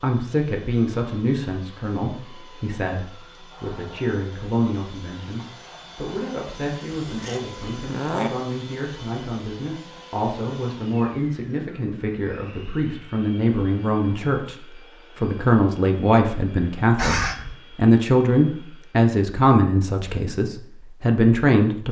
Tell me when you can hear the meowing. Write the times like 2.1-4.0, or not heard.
6.5-8.3, 16.9-17.6.